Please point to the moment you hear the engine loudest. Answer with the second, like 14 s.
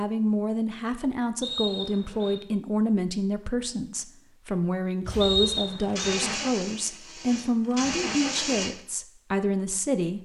8 s.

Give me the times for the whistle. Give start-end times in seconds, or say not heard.
1.4-2.4, 5.2-6.2.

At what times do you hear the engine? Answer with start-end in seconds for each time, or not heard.
5.0-8.8.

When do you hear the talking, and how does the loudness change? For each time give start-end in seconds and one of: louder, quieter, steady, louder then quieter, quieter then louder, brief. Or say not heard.
0.0-10.1 steady.